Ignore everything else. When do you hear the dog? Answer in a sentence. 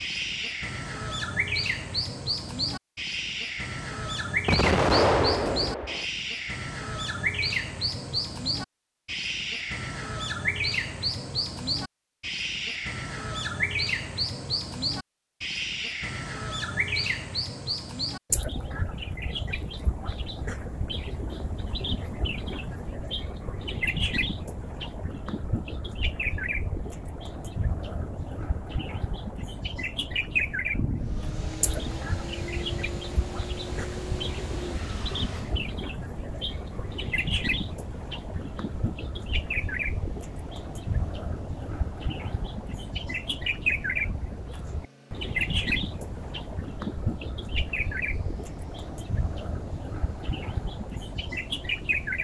The dog can't be heard in this clip.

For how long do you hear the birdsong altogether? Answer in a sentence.
You can hear the birdsong for 52 seconds altogether.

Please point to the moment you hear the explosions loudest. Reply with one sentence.
The loudest moment of the explosions is at 5 seconds.